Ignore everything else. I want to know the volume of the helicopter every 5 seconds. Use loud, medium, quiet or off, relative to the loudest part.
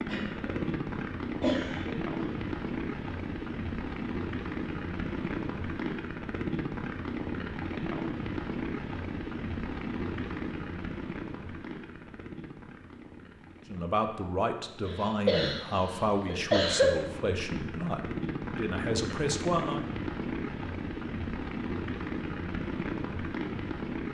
loud, loud, medium, loud, loud.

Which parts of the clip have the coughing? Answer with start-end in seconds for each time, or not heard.
0.1-2.4, 14.8-16.9.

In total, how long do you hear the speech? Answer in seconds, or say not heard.
6 s.